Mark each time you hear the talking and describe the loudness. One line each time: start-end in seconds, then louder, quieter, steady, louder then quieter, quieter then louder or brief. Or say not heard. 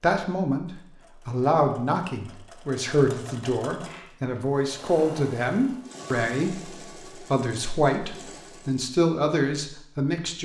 0.0-10.4 steady.